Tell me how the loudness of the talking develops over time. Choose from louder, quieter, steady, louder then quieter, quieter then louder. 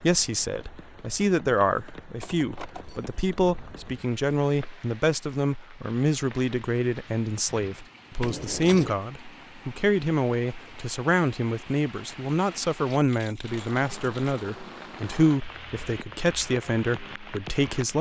steady.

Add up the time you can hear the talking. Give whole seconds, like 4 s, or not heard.
18 s.